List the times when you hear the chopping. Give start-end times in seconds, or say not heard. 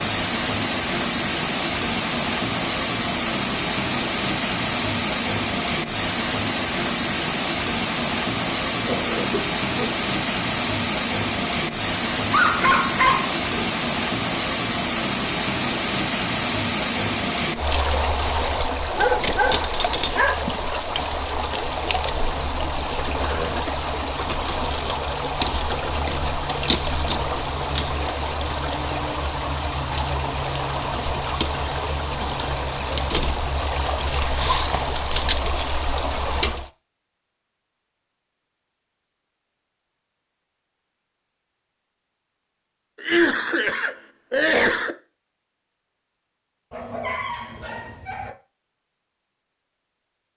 not heard.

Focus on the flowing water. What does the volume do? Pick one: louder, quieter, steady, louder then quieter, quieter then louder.
steady.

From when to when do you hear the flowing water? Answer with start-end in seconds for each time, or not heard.
0.0-36.7.